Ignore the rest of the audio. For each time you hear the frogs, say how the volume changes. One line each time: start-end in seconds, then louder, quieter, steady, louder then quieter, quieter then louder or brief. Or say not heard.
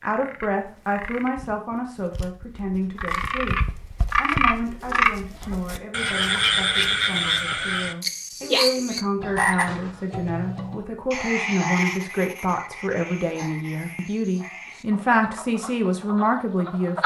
0.0-17.0 louder then quieter.